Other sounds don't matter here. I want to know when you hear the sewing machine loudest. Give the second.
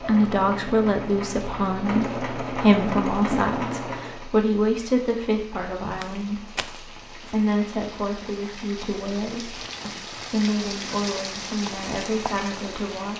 3 s.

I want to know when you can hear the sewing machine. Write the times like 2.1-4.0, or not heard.
0.0-4.2.